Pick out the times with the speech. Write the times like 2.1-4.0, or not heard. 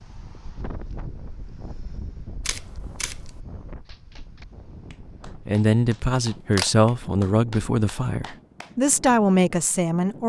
5.5-10.2.